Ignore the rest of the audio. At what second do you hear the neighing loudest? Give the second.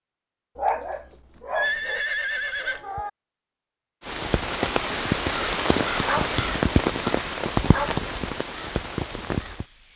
2 s.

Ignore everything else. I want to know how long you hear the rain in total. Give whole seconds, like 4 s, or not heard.
6 s.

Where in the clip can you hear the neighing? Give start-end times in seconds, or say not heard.
1.5-3.1.